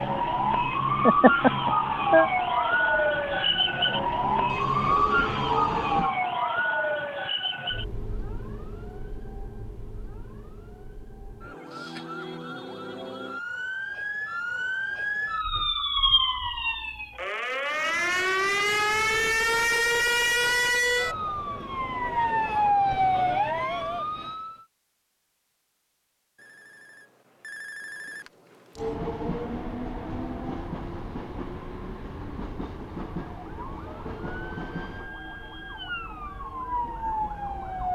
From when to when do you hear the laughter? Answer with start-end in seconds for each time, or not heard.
1.1-2.3.